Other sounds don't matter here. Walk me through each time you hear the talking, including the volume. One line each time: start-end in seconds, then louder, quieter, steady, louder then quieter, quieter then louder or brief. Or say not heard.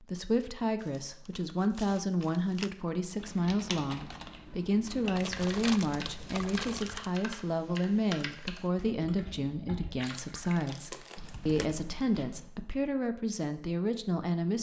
0.0-14.5 steady.